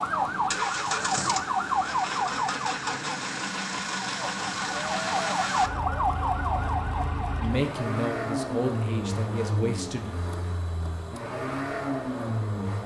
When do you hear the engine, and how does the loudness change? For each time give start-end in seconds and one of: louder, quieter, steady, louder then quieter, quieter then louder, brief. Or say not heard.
0.0-12.8 steady.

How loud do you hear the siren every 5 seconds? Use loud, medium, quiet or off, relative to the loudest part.
loud, loud, off.